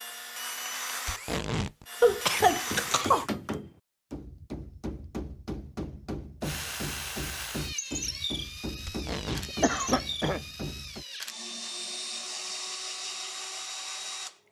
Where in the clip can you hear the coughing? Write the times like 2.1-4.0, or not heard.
2.0-3.2, 9.4-10.4.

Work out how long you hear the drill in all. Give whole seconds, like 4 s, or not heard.
11 s.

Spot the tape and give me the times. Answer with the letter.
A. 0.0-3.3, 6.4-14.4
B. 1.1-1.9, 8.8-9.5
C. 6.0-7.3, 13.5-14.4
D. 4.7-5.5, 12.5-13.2
B.